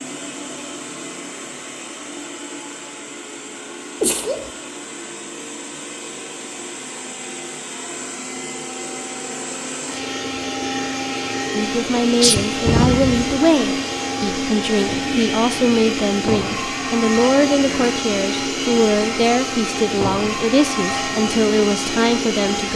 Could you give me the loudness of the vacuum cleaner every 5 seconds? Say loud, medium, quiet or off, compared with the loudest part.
medium, medium, loud, loud, loud.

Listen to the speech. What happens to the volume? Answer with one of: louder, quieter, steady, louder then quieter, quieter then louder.
steady.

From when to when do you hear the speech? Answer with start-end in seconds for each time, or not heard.
11.5-22.7.